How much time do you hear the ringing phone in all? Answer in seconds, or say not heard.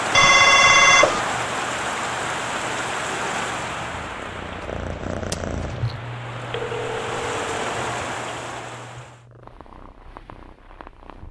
2 s.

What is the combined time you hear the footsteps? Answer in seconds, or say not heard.
not heard.